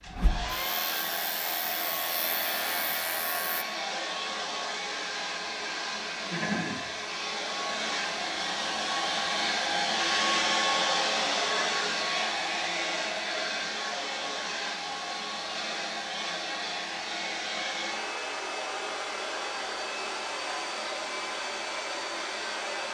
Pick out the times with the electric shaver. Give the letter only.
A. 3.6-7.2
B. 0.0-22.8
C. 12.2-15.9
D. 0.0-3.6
D.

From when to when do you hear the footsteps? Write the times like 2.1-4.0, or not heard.
not heard.